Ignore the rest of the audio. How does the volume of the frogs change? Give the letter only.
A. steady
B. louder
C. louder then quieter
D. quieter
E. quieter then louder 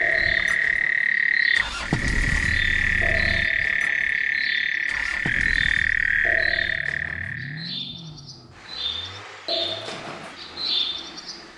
A.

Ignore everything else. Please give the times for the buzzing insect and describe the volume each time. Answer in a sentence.
You can't hear the buzzing insect here.